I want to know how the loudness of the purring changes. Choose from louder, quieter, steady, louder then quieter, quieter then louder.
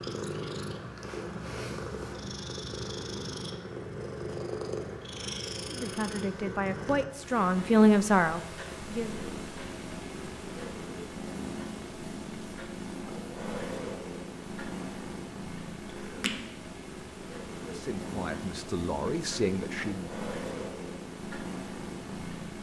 steady.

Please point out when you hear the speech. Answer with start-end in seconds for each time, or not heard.
5.7-9.2, 17.6-20.1.